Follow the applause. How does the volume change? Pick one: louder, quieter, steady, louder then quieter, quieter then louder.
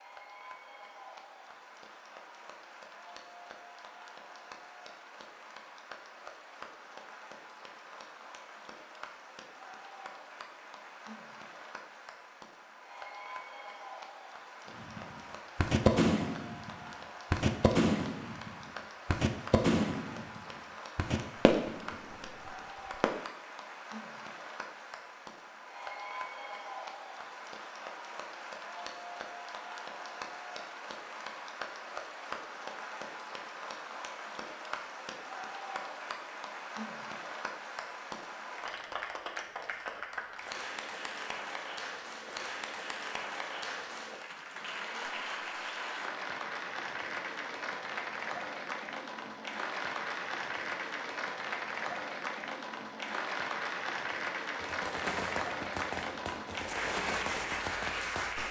louder.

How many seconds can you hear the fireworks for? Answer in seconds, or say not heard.
12 s.